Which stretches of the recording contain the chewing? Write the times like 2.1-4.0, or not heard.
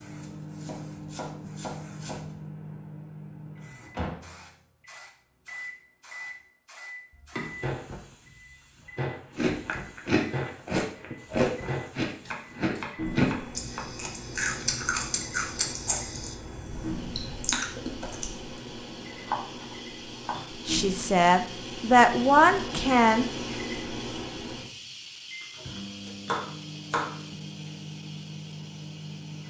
9.3-18.4.